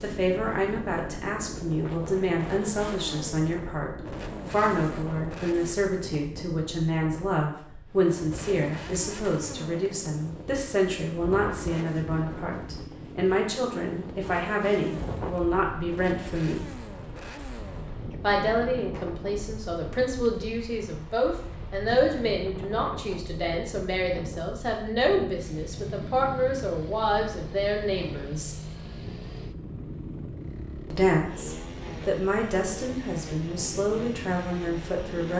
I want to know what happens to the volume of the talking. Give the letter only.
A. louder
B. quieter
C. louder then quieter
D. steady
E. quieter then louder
D.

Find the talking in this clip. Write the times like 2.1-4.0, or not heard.
0.0-16.6, 18.2-28.6, 30.9-35.3.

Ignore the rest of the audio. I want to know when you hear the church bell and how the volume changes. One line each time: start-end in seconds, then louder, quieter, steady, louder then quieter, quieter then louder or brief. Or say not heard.
not heard.